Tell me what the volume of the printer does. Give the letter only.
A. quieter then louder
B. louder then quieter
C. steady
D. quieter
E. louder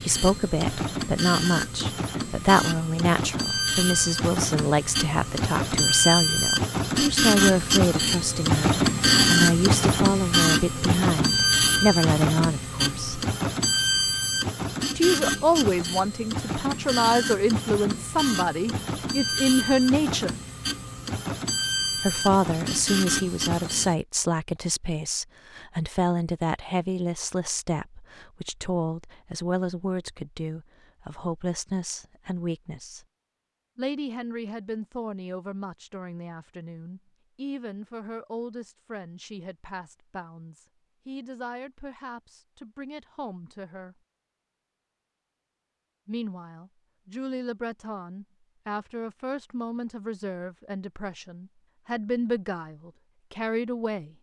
B.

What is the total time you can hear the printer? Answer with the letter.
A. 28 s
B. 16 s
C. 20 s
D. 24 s
D.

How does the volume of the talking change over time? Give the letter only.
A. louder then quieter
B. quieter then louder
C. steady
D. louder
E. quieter
E.